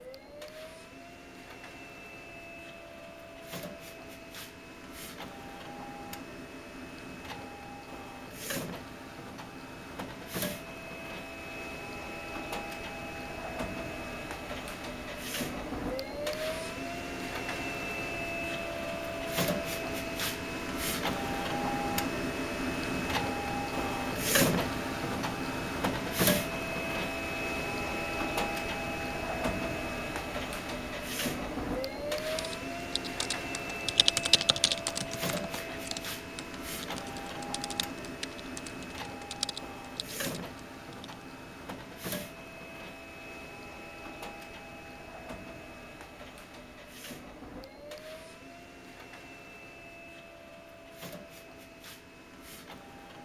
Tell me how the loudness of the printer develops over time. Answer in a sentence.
The loudness of the printer goes up, then down.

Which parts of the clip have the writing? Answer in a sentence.
You can't hear the writing here.